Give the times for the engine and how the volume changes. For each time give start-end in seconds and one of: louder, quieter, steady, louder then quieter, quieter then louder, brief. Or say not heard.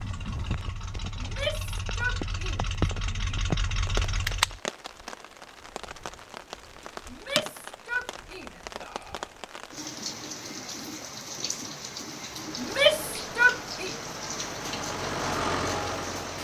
0.0-4.6 louder
12.3-16.3 louder.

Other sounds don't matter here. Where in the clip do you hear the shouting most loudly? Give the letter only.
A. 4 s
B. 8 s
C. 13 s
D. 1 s
C.